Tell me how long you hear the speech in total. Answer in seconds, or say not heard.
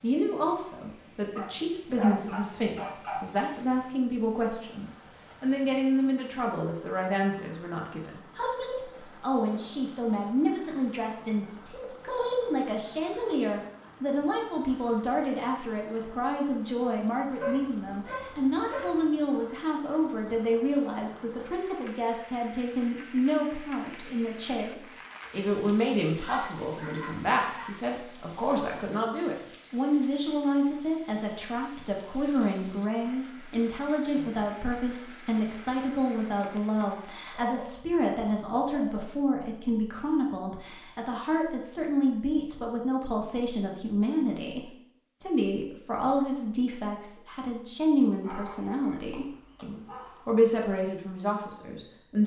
52 s.